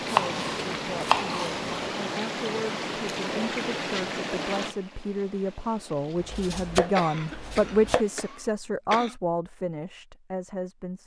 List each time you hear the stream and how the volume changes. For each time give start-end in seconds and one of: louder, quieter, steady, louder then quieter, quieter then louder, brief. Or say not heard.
0.0-8.6 quieter.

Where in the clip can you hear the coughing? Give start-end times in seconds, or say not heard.
6.8-9.2.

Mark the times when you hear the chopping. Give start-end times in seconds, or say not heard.
0.1-1.6, 6.2-8.1.